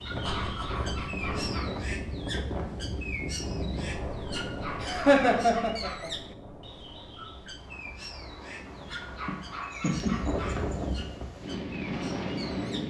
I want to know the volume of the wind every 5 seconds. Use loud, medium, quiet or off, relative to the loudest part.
loud, quiet, loud.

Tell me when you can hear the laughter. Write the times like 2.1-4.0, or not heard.
0.2-1.4, 4.8-6.1, 9.2-10.6.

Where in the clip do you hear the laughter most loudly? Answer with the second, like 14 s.
5 s.